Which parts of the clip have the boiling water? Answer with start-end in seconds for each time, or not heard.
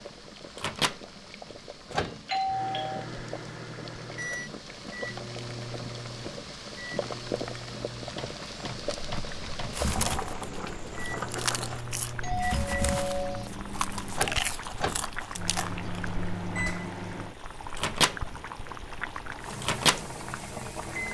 0.0-21.0.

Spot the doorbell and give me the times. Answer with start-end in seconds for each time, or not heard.
2.2-3.0, 12.2-13.5.